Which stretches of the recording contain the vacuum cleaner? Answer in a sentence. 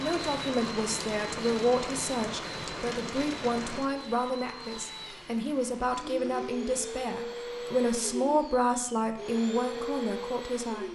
The vacuum cleaner can be heard from 0.0 to 10.9 s.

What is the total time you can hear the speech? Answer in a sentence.
The speech can be heard for 11 seconds in total.